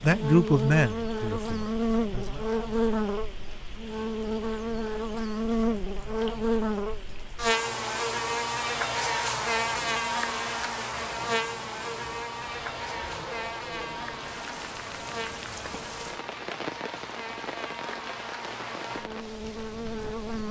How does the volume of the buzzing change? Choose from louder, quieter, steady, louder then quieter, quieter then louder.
quieter.